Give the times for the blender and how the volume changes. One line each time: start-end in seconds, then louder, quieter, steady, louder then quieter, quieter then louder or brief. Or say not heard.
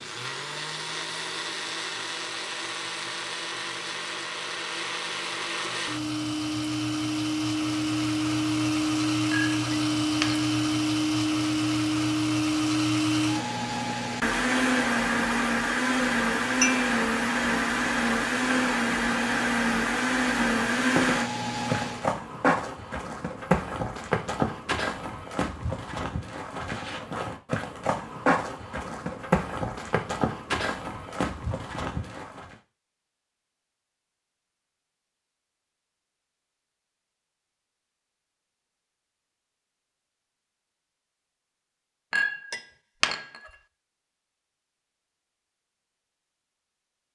0.0-22.1 louder.